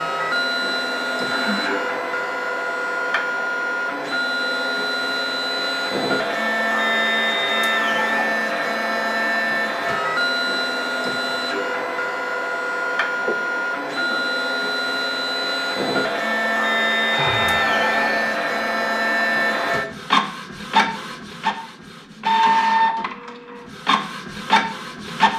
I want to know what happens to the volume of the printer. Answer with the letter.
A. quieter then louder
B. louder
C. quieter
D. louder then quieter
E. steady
E.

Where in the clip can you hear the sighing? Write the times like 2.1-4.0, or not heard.
1.2-1.9, 13.2-14.2, 17.1-18.9.